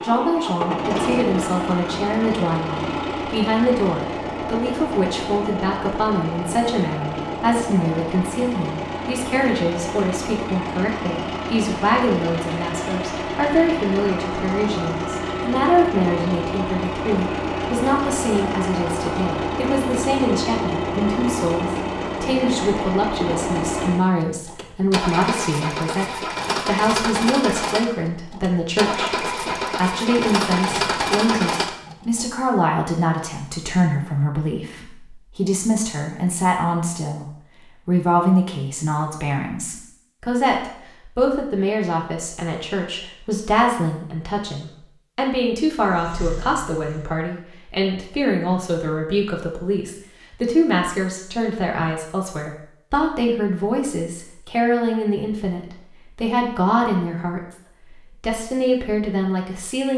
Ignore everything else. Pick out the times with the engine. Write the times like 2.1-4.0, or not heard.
0.0-32.2, 45.9-47.2.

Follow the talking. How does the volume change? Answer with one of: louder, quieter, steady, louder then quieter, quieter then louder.
steady.